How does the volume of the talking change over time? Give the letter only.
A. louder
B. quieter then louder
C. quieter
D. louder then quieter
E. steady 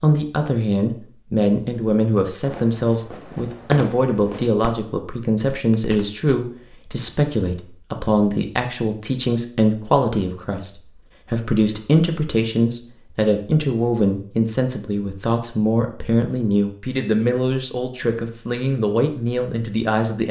E.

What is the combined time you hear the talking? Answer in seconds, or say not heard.
20 s.